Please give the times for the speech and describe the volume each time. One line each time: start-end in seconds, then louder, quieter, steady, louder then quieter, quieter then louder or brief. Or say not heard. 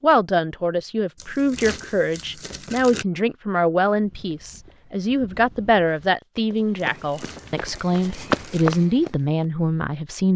0.0-10.3 steady.